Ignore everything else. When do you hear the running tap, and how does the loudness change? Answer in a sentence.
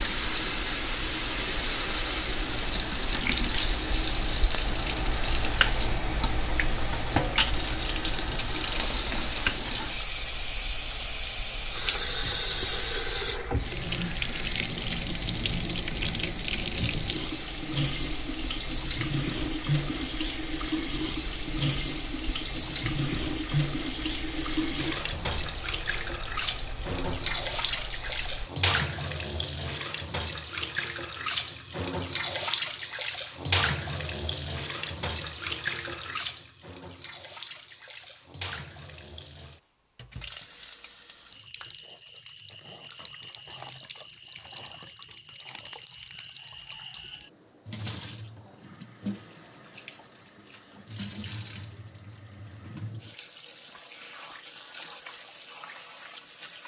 You can hear the running tap from 0.0 to 56.6 s, getting quieter.